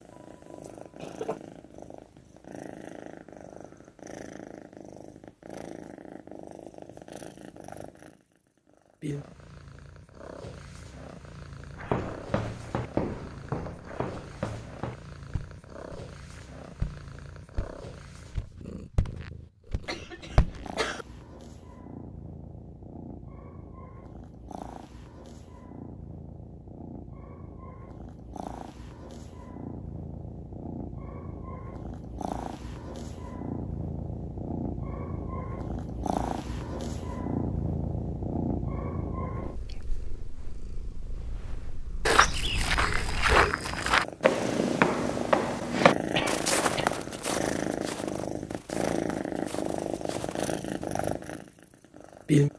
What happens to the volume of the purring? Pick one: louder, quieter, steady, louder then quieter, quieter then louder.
louder.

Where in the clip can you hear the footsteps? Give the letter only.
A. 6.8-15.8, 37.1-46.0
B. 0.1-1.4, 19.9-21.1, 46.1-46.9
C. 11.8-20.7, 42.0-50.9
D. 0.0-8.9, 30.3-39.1
C.